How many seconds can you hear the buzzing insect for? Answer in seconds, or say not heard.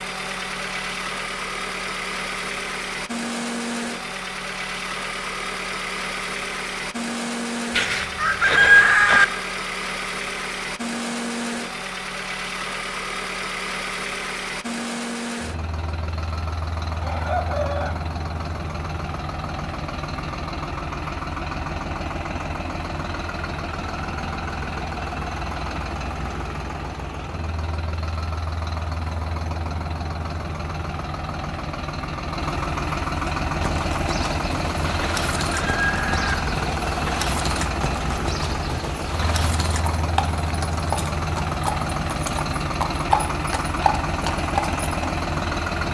not heard.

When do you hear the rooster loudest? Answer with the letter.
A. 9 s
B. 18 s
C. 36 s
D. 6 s
A.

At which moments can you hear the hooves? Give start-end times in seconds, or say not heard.
33.2-44.9.